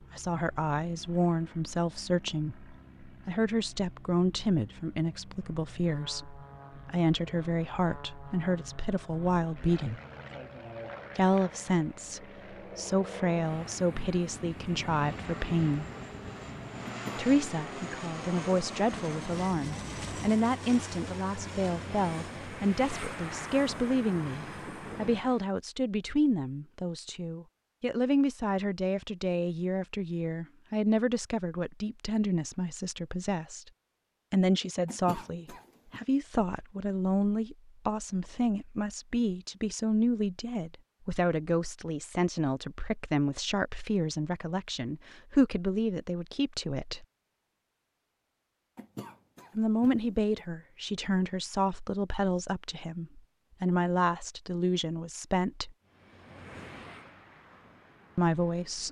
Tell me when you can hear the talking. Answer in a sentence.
You can hear the talking from 0.1 to 10.0 s, from 11.2 to 15.8 s, from 17.1 to 33.7 s, from 34.3 to 47.0 s, from 49.5 to 55.8 s and from 58.1 to 58.8 s.